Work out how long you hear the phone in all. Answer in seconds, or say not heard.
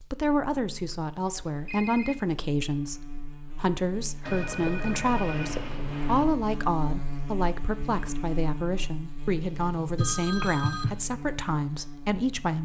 4 s.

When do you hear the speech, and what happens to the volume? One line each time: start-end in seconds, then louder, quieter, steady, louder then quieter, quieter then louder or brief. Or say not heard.
0.1-12.5 steady.